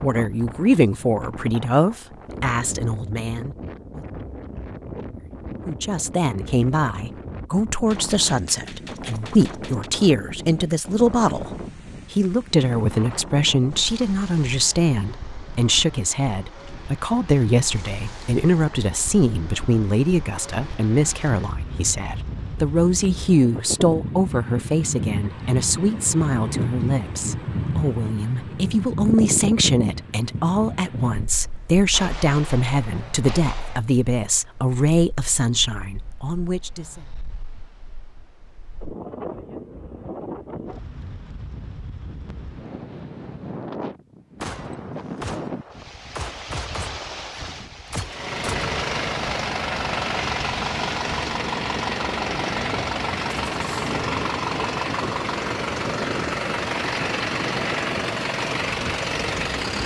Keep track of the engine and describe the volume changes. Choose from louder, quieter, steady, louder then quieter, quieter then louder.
steady.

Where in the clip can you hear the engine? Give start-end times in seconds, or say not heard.
48.0-59.8.